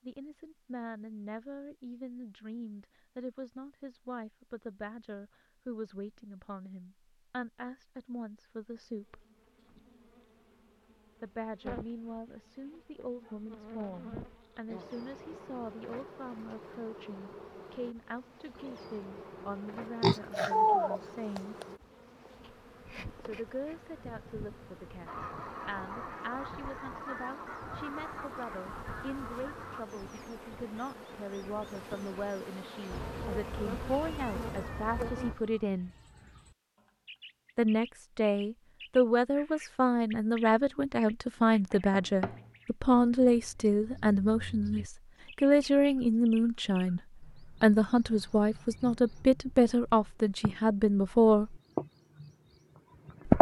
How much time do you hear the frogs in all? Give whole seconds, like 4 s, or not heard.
not heard.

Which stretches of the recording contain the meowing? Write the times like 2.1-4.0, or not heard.
32.9-35.4.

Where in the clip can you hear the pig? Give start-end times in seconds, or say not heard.
20.0-21.6.